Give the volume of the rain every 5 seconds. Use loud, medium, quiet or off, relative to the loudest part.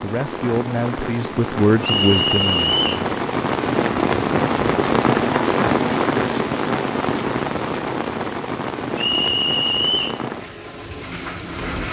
loud, loud, medium.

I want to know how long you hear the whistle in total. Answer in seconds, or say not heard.
2 s.